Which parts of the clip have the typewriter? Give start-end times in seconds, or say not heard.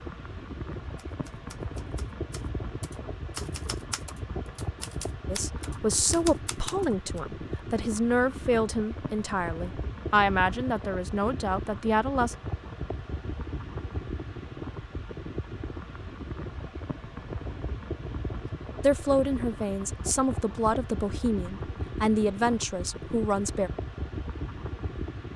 0.9-7.2.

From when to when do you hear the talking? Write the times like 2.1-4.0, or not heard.
5.2-12.3, 18.8-23.7.